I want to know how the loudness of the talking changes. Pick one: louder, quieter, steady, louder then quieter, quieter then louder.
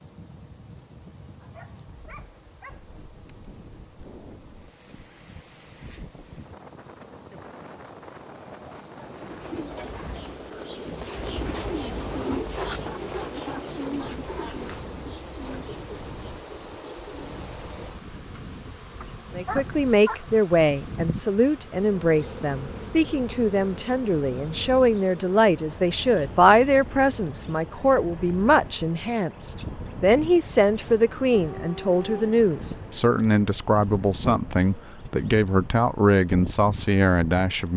steady.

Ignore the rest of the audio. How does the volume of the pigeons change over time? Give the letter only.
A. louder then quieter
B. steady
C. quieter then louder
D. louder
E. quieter
A.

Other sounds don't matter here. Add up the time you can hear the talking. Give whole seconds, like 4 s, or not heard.
18 s.